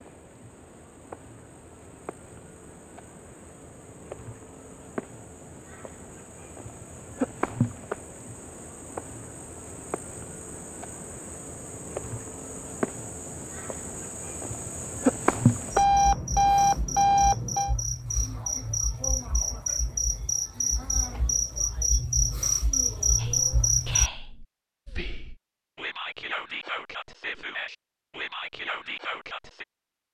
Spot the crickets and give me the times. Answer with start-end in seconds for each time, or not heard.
0.0-24.1.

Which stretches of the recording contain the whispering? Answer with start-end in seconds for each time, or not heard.
23.1-29.6.